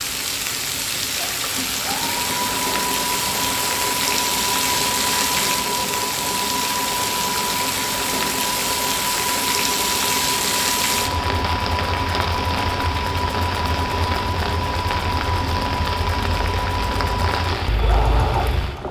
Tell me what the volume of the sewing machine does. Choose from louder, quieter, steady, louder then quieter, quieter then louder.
steady.